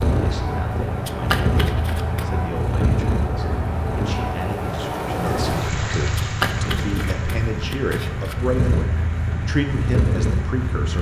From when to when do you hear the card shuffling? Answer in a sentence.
You can hear the card shuffling from 1.1 to 2.2 s and from 6.2 to 8.3 s.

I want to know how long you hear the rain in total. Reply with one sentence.
The rain can be heard for 11 seconds in total.